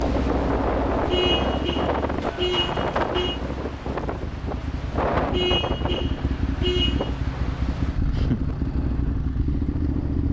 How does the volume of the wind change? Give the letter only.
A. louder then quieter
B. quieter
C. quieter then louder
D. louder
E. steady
B.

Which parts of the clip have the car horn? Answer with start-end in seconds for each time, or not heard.
1.1-3.4, 5.3-7.1.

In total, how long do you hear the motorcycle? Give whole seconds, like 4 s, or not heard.
10 s.